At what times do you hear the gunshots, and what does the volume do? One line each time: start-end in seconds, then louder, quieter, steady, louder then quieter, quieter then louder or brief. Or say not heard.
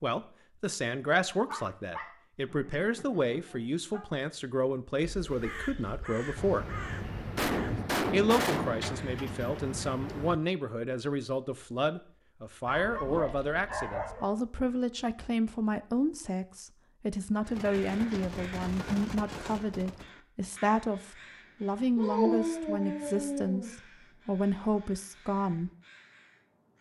6.3-10.4 louder then quieter
17.5-20.1 brief.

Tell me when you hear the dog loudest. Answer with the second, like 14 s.
22 s.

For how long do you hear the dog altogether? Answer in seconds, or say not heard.
6 s.